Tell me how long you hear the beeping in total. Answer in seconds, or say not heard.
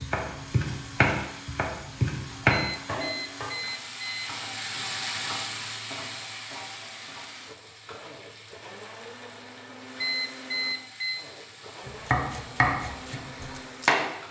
3 s.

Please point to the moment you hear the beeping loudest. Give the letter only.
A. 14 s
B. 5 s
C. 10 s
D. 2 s
C.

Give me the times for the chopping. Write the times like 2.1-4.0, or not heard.
0.0-3.5, 11.8-14.1.